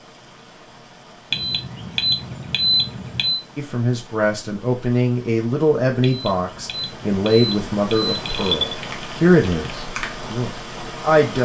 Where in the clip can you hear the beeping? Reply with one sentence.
You can hear the beeping from 1.3 to 3.4 s and from 6.0 to 8.8 s.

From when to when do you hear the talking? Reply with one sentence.
You can hear the talking from 3.5 to 11.4 s.